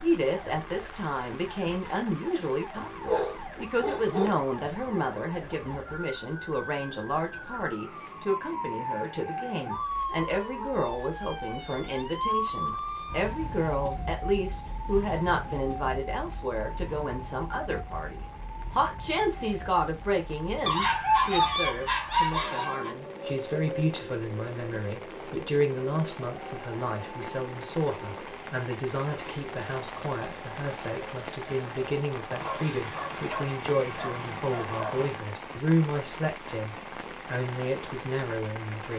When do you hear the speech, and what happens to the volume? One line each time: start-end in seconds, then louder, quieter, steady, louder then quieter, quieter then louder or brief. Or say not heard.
0.0-38.9 steady.